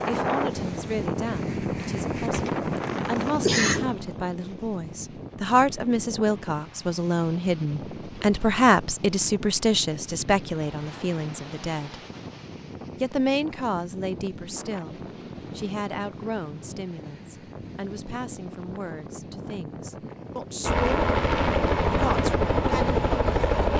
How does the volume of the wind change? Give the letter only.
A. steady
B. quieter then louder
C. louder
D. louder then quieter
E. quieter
E.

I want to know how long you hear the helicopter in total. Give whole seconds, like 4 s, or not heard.
3 s.